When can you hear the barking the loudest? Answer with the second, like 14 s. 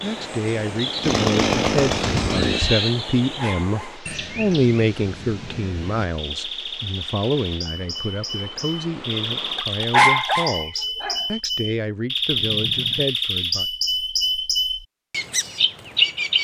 10 s.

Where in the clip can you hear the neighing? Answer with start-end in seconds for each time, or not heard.
2.3-3.0, 12.3-13.1.